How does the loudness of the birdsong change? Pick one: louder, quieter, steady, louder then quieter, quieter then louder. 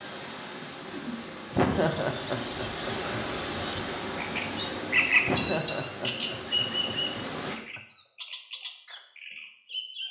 louder then quieter.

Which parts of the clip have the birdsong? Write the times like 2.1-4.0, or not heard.
1.7-10.0.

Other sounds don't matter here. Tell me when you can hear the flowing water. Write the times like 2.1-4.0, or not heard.
0.0-7.6.